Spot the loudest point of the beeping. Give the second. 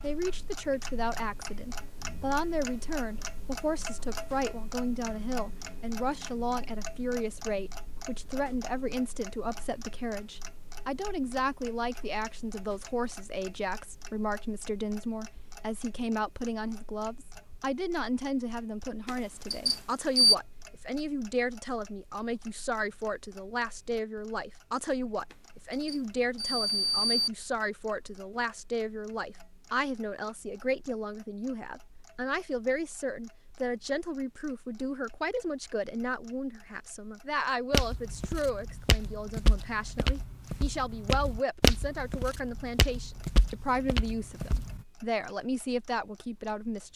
20 s.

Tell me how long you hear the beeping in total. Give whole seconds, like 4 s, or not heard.
3 s.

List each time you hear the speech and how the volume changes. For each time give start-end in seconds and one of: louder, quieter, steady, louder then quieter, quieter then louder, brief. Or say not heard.
0.0-46.9 steady.